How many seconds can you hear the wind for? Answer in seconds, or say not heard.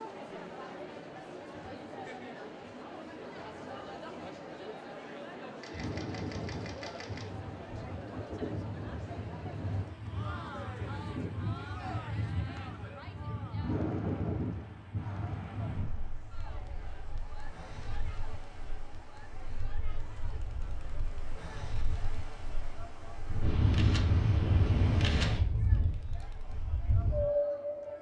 22 s.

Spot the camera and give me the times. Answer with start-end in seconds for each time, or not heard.
5.6-7.2, 23.2-25.3.